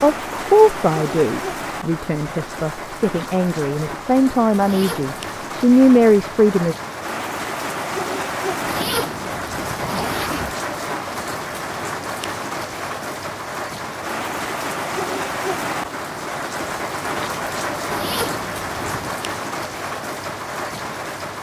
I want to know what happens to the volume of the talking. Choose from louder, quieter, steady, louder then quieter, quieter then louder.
quieter then louder.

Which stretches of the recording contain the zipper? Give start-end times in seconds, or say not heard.
4.6-5.2, 8.7-10.6, 17.9-19.2.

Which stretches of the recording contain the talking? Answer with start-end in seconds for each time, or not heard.
0.0-6.8.